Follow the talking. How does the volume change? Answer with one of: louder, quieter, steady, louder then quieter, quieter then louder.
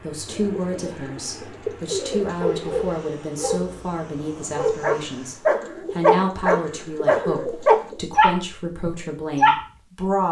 steady.